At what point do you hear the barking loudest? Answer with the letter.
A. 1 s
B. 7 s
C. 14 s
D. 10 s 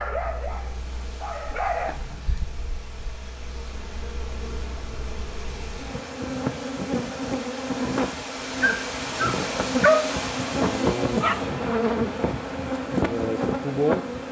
D.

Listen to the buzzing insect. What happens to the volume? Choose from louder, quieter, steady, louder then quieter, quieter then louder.
louder.